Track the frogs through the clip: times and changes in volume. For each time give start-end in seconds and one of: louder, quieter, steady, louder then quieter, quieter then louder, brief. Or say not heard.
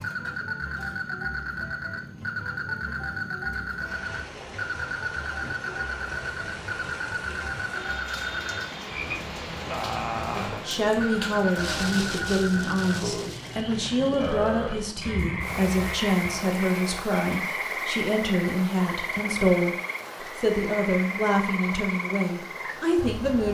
0.0-23.4 steady.